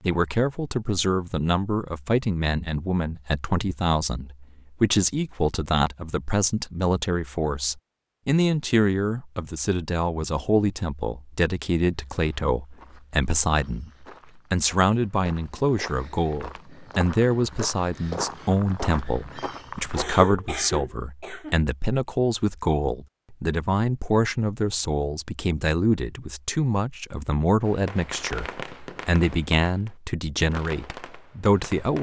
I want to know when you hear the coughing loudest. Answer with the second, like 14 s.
20 s.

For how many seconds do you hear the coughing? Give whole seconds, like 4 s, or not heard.
2 s.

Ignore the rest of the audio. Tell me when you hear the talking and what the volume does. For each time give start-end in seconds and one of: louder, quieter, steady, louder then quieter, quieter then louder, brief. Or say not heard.
0.0-31.9 steady.